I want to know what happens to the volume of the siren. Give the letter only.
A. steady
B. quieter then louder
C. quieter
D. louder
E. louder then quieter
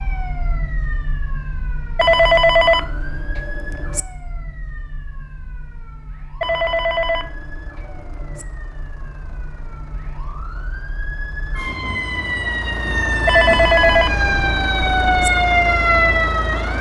B.